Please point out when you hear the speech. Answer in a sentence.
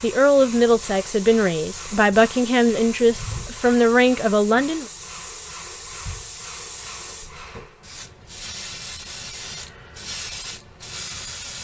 The speech can be heard from 0.0 to 4.8 s.